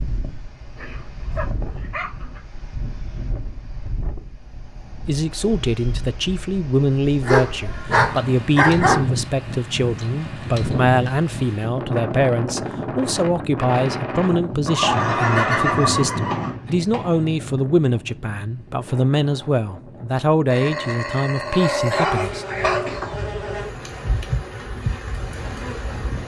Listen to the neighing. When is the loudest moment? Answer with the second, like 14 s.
16 s.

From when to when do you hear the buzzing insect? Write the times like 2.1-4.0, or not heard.
21.9-26.2.